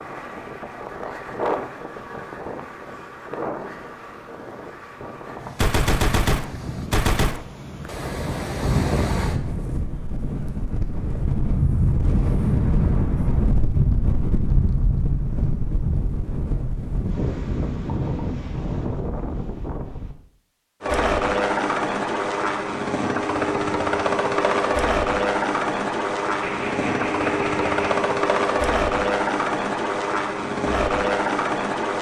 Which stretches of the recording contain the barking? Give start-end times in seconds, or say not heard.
not heard.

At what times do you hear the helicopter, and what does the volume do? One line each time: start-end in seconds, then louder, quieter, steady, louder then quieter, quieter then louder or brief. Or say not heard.
20.8-31.9 steady.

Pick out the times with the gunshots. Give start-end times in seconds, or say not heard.
5.5-7.4, 26.4-28.1.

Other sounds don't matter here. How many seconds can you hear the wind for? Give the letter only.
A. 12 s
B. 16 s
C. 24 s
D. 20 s
D.